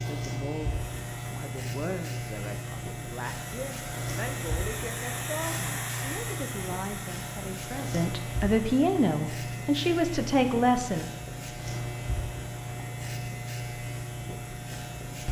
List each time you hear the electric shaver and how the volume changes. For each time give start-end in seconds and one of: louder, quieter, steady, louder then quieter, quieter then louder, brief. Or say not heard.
0.0-15.2 steady.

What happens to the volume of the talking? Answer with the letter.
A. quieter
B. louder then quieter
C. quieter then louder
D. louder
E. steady
D.